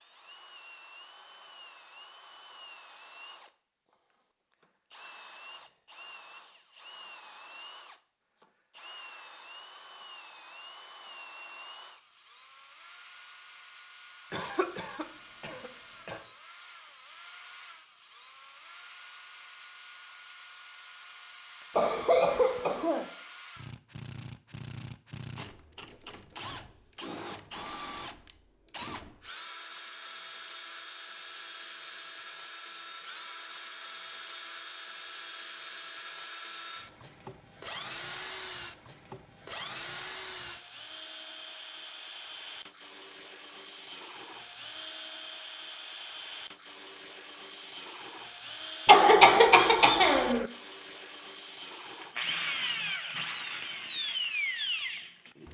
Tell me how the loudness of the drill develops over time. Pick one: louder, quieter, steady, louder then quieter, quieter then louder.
louder.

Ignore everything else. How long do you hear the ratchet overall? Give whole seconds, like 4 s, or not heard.
not heard.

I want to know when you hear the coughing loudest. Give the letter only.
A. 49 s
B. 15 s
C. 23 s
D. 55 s
A.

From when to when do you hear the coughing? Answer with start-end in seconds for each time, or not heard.
14.3-16.2, 21.8-23.1, 48.9-50.5.